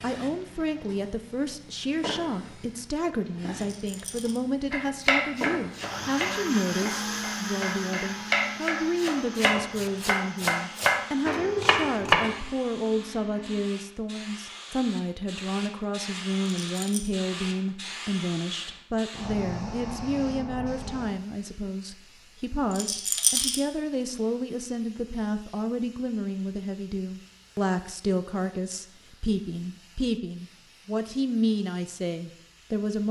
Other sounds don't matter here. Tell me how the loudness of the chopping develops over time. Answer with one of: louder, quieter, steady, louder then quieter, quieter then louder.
quieter then louder.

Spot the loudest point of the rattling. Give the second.
23 s.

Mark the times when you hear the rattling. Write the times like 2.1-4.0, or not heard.
3.5-4.4, 16.6-17.1, 22.7-23.6.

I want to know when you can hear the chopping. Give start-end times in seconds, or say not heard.
4.7-12.4.